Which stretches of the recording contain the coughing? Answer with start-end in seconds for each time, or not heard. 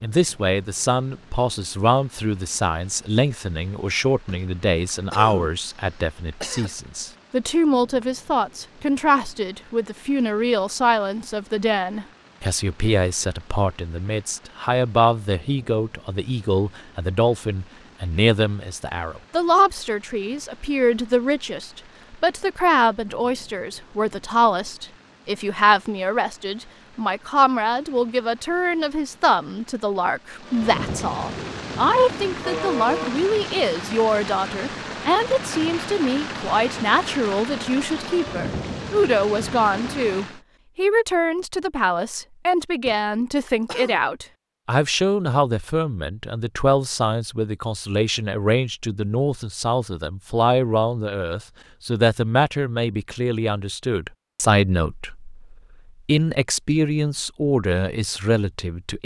4.2-6.7, 32.5-33.2, 42.9-44.0.